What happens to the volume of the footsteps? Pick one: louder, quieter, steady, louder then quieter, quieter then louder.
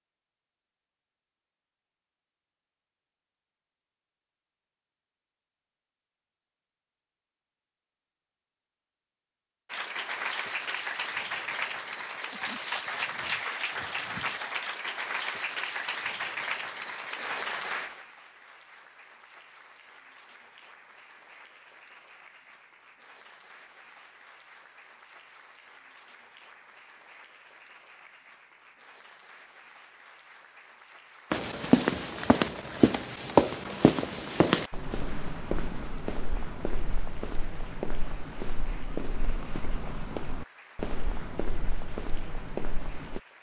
quieter.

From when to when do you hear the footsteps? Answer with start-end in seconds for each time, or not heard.
31.3-43.2.